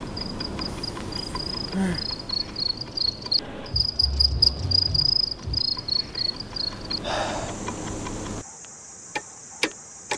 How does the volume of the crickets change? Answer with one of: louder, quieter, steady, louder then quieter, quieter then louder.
louder then quieter.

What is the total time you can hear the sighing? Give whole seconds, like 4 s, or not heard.
3 s.